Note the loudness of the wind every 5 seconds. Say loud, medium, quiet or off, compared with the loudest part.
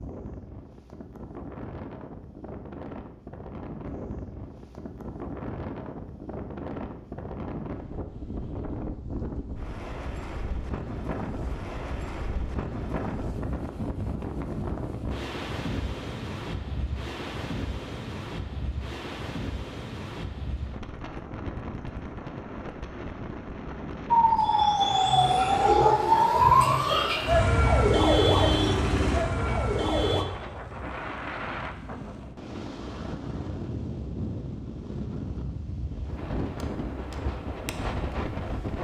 medium, loud, loud, loud, loud, loud, loud, loud.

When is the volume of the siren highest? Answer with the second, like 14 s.
26 s.